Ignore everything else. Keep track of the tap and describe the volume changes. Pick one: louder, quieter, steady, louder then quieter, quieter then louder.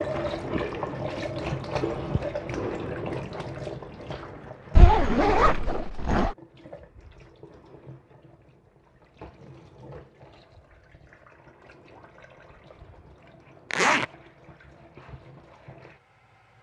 quieter.